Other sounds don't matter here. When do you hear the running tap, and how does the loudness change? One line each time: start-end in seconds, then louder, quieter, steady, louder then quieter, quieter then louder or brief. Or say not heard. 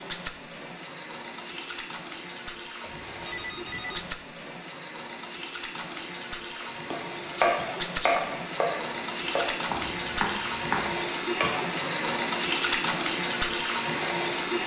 0.0-14.6 louder.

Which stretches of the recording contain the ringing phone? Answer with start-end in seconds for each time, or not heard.
2.8-4.2.